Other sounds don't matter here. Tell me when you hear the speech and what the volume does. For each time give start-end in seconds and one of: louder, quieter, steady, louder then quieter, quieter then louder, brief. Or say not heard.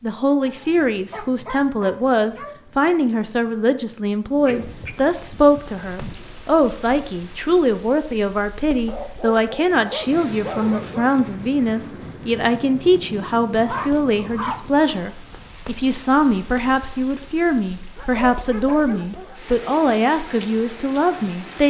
0.0-21.6 steady.